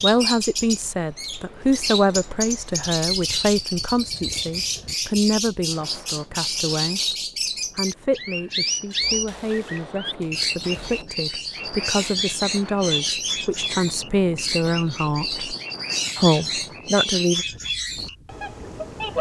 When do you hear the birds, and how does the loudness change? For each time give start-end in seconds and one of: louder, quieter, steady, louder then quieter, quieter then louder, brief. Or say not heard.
0.0-19.1 steady.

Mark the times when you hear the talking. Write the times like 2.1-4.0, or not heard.
0.0-7.2, 7.8-15.4, 16.1-17.4.